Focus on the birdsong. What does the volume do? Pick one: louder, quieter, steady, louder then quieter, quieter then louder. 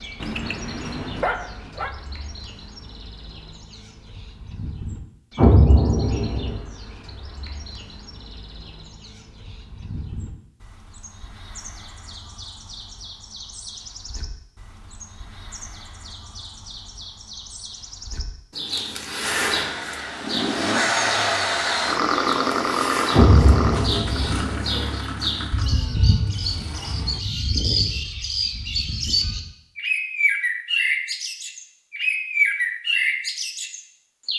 louder.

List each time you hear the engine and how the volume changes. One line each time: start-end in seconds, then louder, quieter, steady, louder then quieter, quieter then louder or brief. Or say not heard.
19.4-27.2 quieter.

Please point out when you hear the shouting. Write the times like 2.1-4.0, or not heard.
not heard.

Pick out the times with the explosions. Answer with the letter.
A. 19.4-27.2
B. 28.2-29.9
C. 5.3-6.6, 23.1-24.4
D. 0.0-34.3
C.